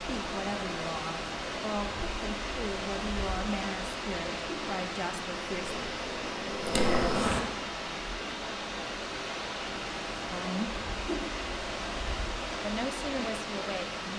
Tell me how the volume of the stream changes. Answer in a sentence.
The volume of the stream stays about the same.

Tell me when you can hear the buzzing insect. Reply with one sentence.
You can hear the buzzing insect from 5.5 to 7.4 s.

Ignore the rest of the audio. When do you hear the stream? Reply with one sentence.
You can hear the stream from 0.0 to 14.1 s.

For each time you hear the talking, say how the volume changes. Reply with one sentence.
The talking can be heard from 0.0 to 5.8 s, at a steady volume; briefly from 10.3 to 10.8 s; and briefly from 12.6 to 14.1 s.